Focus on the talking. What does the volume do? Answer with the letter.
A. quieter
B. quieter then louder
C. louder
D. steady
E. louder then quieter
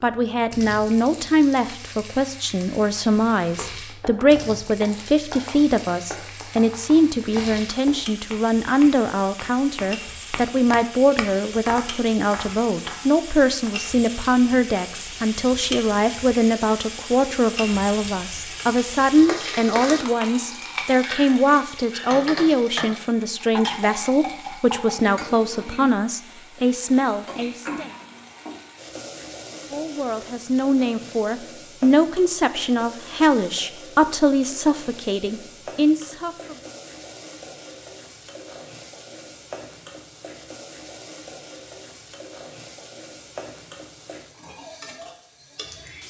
D.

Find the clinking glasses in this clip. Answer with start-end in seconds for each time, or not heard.
not heard.